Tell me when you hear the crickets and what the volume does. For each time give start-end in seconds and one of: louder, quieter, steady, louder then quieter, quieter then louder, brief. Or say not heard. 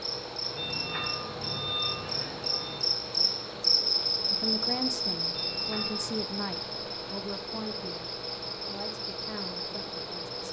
0.0-10.4 louder then quieter.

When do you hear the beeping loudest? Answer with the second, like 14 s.
2 s.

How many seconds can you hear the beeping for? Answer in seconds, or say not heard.
3 s.